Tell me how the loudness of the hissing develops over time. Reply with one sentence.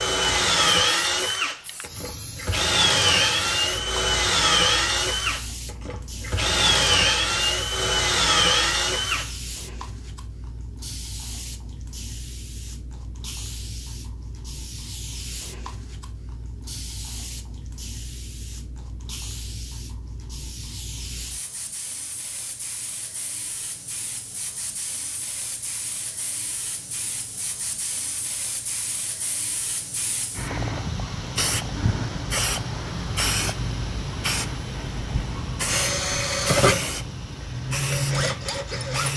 The volume of the hissing goes up.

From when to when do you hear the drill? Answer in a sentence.
The drill can be heard from 0.0 to 9.3 s and from 35.6 to 39.1 s.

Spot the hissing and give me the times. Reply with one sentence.
The hissing can be heard from 0.0 to 39.1 s.